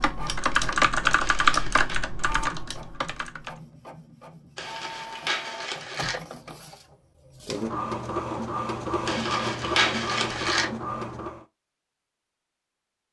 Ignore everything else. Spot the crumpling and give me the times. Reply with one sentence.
The crumpling can be heard from 1.1 to 2.0 s, from 4.5 to 6.2 s and from 9.1 to 10.7 s.